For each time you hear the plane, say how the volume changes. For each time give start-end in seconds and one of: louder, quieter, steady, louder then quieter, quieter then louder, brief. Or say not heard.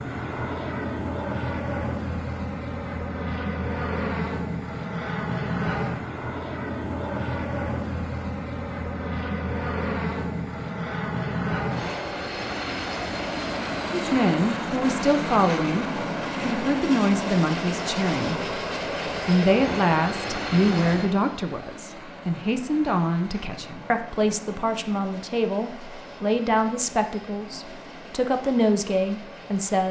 0.0-29.8 quieter.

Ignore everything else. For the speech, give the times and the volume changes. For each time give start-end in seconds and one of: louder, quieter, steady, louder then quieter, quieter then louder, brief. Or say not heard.
13.9-29.8 steady.